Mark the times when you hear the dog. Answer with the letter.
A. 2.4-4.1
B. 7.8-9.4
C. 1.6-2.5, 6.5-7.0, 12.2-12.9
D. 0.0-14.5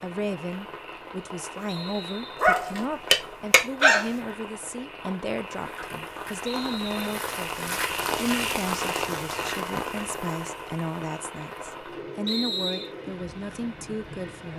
A.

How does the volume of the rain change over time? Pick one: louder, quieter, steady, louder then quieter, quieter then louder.
louder then quieter.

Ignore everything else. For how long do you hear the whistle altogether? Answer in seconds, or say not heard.
2 s.